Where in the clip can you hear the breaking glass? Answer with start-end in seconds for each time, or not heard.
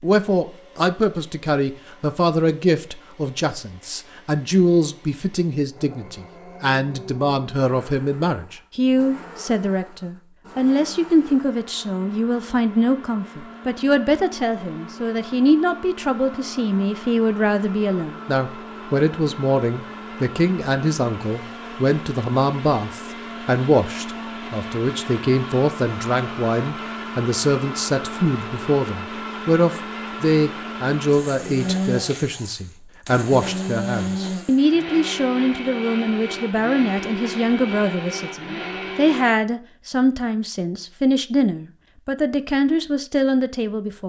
not heard.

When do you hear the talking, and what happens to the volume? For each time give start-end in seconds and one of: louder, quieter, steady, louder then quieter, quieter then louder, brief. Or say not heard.
0.0-44.0 steady.